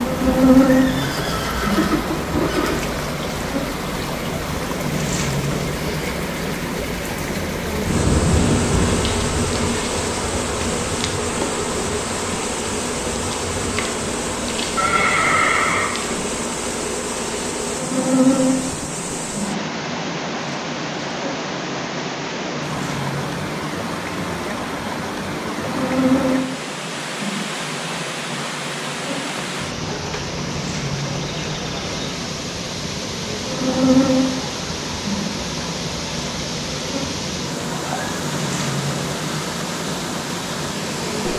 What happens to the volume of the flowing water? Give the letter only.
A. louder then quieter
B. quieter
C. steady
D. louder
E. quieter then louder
C.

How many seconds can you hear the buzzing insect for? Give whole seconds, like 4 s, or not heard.
41 s.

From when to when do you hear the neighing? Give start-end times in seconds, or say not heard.
0.7-2.8, 14.8-15.9, 37.7-38.1.